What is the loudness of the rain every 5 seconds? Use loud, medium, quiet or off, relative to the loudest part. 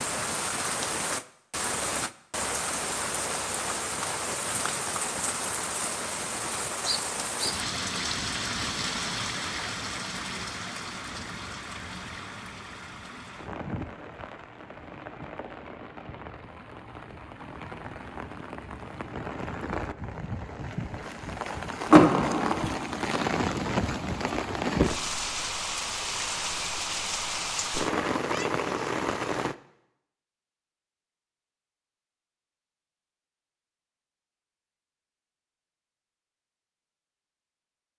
loud, loud, medium, medium, loud, loud, off, off.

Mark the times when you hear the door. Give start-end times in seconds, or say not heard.
21.9-22.8.